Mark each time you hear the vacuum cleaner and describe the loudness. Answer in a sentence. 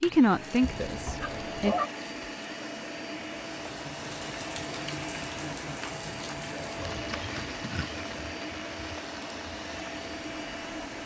You can hear the vacuum cleaner from 0.0 to 11.0 s, at a steady volume.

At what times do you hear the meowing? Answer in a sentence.
You can hear the meowing from 0.6 to 1.9 s and from 6.9 to 8.1 s.